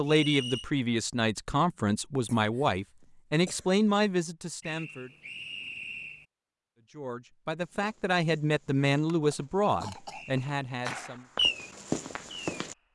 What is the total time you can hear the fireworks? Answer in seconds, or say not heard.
2 s.